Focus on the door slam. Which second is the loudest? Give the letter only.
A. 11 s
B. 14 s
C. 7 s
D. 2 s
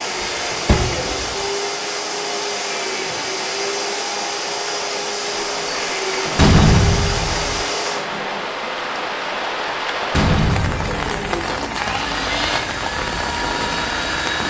C.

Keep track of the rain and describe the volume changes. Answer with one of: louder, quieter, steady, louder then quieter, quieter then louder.
louder.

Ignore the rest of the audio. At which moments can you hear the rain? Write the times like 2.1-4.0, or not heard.
0.0-14.4.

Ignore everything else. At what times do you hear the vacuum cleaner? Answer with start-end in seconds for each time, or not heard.
0.0-8.5, 10.6-14.4.